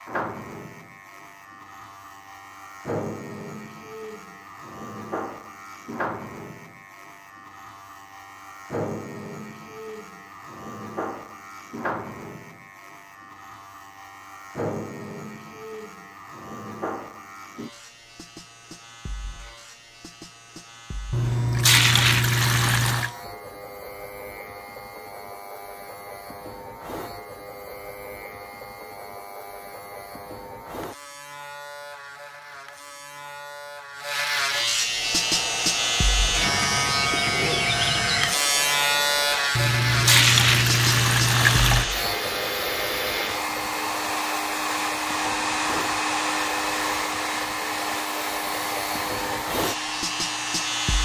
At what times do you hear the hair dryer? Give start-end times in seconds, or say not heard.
34.8-50.9.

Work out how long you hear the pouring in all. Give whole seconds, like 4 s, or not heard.
4 s.